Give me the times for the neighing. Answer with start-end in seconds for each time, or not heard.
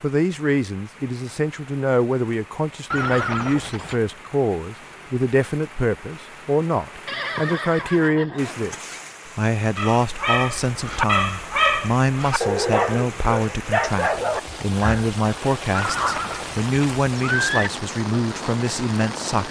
2.9-4.0, 7.0-9.0, 15.7-17.7.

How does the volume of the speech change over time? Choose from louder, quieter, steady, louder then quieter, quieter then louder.
steady.